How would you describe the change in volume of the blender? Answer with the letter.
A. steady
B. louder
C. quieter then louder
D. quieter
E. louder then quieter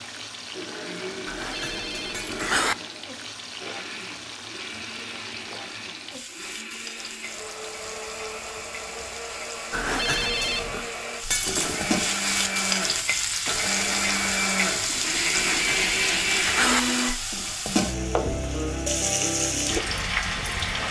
B.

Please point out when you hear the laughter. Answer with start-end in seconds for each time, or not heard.
not heard.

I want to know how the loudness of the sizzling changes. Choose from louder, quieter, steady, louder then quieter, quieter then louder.
louder.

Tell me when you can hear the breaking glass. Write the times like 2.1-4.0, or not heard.
2.1-2.6, 11.3-11.9.